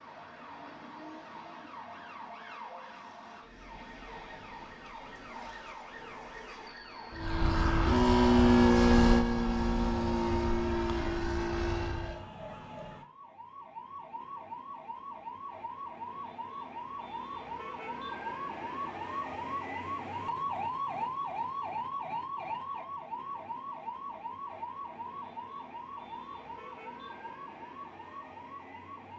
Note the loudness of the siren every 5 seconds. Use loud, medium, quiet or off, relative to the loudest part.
medium, medium, medium, loud, loud, medium.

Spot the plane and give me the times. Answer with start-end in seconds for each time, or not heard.
7.1-12.2.